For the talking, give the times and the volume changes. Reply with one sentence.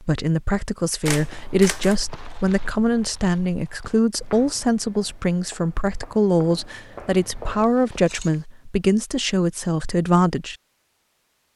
You can hear the talking from 0.0 to 10.6 s, at a steady volume.